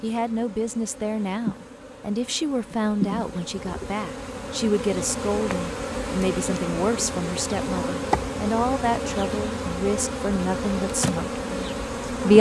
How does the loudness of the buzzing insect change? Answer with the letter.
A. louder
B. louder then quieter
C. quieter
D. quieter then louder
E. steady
A.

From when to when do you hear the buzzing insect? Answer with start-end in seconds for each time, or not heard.
0.0-12.3.